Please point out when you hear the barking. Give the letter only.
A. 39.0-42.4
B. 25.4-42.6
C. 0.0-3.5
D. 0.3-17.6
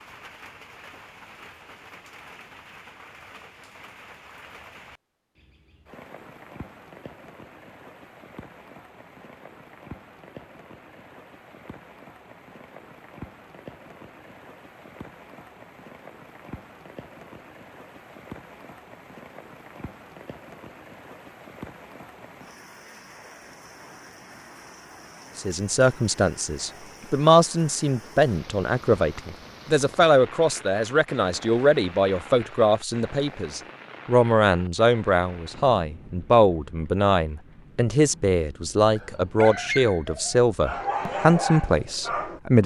A.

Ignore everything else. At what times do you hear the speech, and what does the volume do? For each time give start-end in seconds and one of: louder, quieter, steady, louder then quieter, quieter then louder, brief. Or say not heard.
25.4-42.6 steady.